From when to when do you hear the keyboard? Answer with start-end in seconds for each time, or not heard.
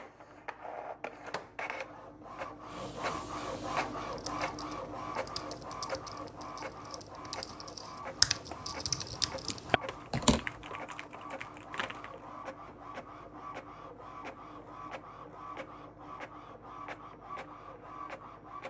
4.0-12.2.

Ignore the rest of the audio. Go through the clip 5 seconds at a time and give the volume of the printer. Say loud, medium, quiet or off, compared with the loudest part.
loud, loud, medium, medium.